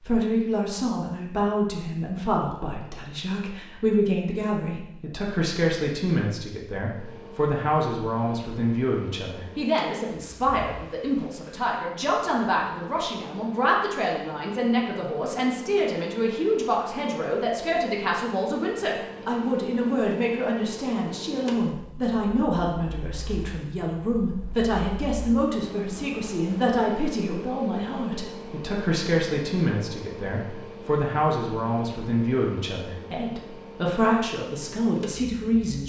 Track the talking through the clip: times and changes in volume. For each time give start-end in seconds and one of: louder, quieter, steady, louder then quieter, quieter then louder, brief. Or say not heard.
0.0-35.8 steady.